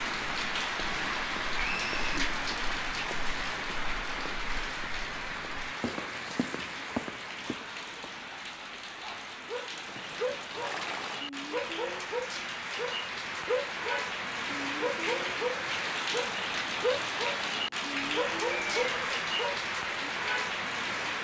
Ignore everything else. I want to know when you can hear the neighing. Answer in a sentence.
The neighing can be heard from 1.6 to 2.2 s, from 9.8 to 11.2 s and from 18.5 to 19.2 s.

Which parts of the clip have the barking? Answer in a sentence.
The barking can be heard from 9.0 to 20.1 s.